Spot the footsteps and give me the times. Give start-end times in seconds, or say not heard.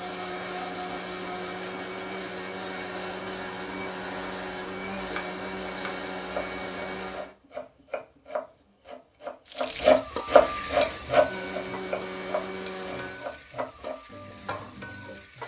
not heard.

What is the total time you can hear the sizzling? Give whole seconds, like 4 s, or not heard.
6 s.